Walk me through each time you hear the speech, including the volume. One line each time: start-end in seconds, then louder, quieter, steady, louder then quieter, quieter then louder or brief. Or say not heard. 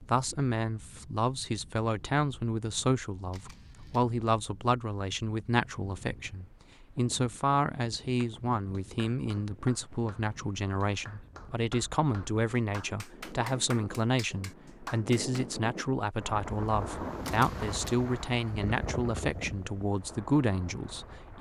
0.1-21.3 steady.